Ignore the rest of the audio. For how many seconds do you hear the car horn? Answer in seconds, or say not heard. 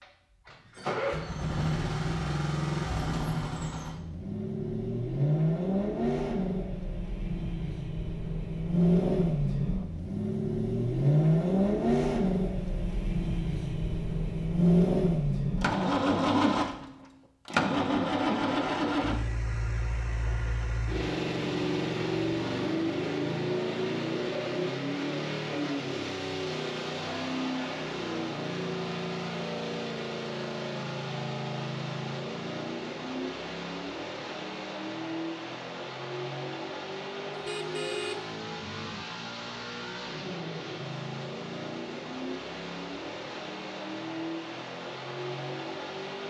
2 s.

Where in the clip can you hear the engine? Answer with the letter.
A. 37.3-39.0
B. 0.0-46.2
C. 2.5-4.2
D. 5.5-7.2
B.